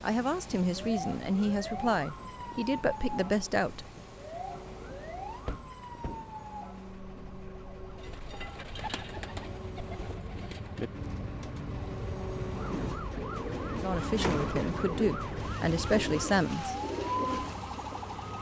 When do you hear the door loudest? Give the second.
14 s.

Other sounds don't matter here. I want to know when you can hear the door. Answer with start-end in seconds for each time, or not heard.
5.5-6.3, 13.7-14.8.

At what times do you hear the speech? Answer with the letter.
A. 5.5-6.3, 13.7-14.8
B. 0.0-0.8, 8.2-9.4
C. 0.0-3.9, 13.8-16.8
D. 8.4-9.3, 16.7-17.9
C.